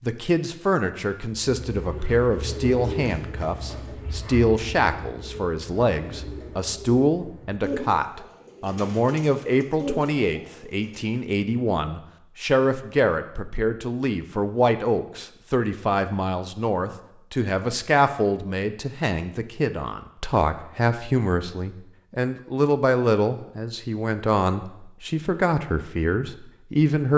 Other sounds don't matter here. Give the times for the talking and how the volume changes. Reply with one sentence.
You can hear the talking from 0.0 to 27.1 s, at a steady volume.